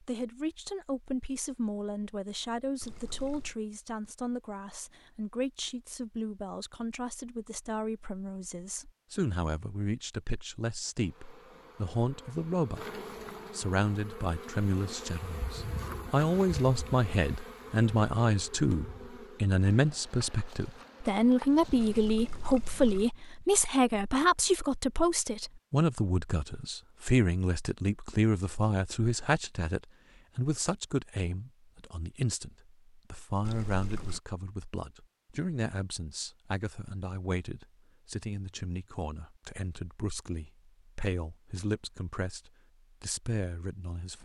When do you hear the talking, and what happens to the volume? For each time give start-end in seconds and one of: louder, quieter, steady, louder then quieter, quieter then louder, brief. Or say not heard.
0.0-44.1 louder then quieter.